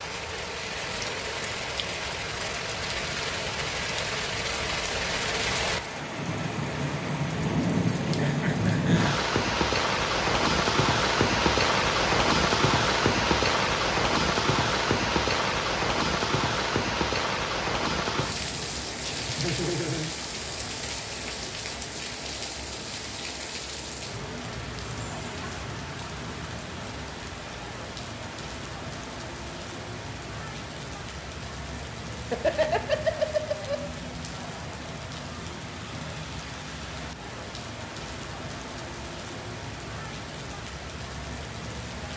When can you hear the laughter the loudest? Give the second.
33 s.